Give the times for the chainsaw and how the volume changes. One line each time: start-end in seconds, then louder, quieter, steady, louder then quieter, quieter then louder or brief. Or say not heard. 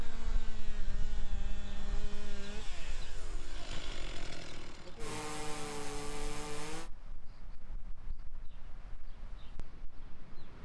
0.0-6.9 louder.